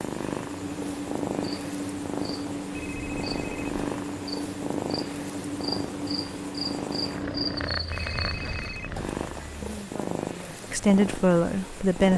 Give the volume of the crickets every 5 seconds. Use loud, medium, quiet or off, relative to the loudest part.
loud, loud, off.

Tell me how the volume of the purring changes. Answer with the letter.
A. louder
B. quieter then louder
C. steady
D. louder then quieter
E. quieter
C.